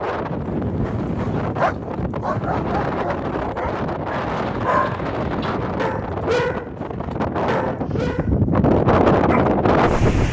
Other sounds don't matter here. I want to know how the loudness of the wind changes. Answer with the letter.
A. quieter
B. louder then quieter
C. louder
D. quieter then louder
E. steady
C.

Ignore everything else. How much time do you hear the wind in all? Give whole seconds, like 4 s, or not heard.
10 s.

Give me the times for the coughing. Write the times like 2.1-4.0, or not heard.
not heard.